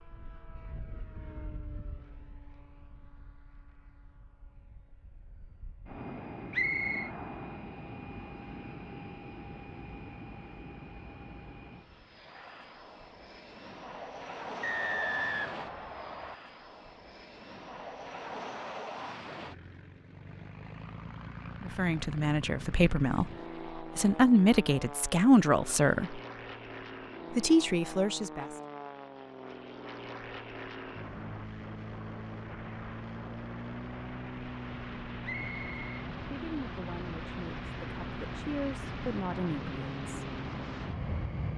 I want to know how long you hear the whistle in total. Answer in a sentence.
The whistle can be heard for 3 seconds in total.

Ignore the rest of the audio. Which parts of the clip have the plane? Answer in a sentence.
You can hear the plane from 0.0 to 41.5 s.